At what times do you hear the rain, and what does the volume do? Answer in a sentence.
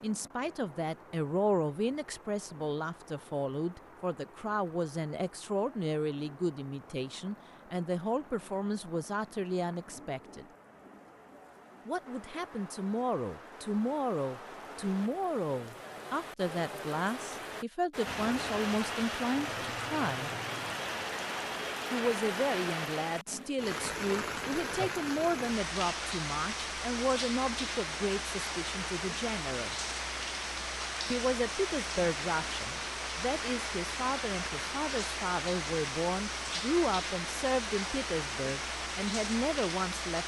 You can hear the rain from 0.0 to 40.2 s, getting louder.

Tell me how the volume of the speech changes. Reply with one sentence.
The loudness of the speech stays about the same.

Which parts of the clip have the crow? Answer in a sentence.
The crow can't be heard in this clip.